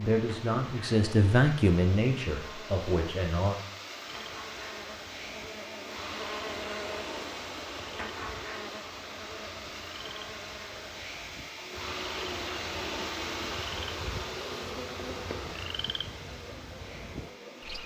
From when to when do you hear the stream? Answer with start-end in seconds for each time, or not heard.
0.0-17.8.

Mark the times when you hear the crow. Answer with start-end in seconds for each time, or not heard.
not heard.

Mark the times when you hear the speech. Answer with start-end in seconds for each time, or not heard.
0.0-3.5.